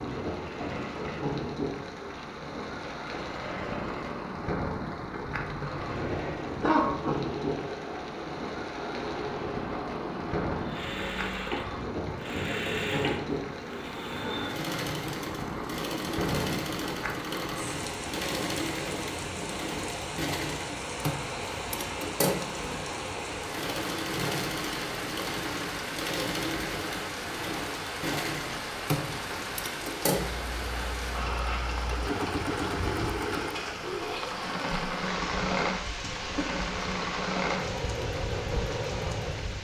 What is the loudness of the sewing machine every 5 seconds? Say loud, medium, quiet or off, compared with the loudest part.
medium, medium, loud, loud, loud, loud, loud, loud.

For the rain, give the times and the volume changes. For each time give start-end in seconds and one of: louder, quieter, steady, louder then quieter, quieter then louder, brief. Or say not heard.
0.0-39.5 steady.